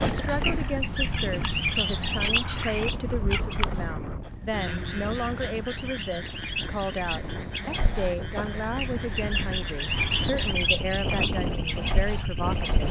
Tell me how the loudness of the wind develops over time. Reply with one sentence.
The volume of the wind goes down, then up.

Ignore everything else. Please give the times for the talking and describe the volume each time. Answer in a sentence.
You can hear the talking from 0.0 to 12.8 s, at a steady volume.